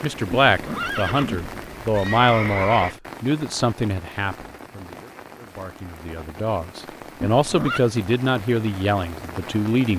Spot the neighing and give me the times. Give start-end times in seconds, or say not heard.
0.5-3.0, 7.4-7.8.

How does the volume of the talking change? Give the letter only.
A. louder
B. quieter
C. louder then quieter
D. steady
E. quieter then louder
E.